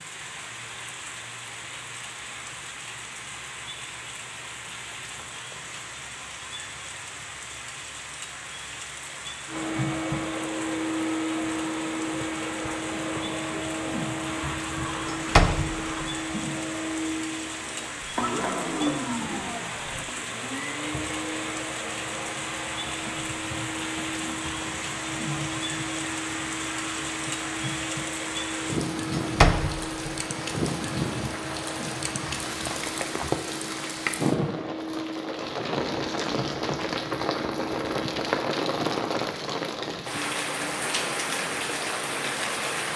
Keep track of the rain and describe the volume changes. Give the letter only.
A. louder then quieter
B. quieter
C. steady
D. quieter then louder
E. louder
E.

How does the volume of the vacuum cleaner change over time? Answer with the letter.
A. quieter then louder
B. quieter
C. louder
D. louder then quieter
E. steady
B.